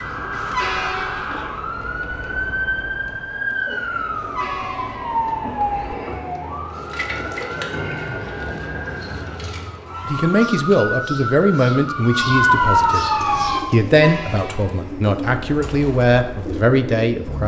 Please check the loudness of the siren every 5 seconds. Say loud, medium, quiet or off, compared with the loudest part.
medium, medium, loud, off.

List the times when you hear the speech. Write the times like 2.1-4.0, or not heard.
10.1-17.4.